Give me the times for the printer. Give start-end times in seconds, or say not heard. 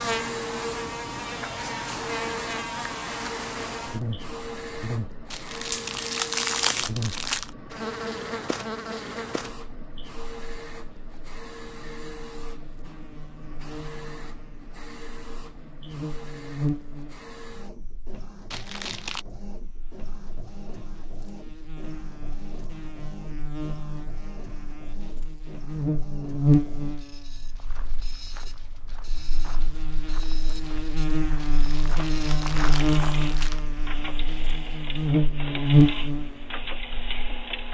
0.0-37.6.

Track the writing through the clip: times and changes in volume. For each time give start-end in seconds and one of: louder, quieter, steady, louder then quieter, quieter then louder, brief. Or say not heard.
not heard.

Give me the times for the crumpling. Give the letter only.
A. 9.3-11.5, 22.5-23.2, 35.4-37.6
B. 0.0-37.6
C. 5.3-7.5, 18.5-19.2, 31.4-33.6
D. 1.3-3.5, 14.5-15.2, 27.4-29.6
C.